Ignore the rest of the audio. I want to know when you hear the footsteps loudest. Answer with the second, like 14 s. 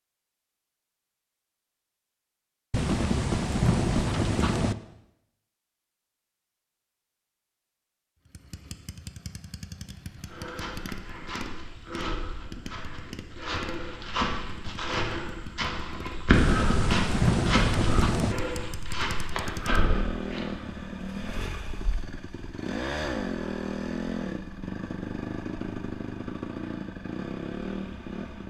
16 s.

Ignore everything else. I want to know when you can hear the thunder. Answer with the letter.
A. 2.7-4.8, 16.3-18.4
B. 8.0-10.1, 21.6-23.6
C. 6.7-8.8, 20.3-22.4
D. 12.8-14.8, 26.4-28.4
A.